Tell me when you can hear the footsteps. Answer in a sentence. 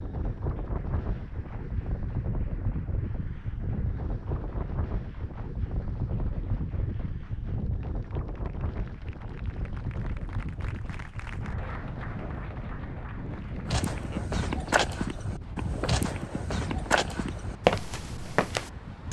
You can hear the footsteps from 13.7 to 19.0 s.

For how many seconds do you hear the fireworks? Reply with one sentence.
You can't hear the fireworks here.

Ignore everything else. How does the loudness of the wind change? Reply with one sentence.
The loudness of the wind goes down.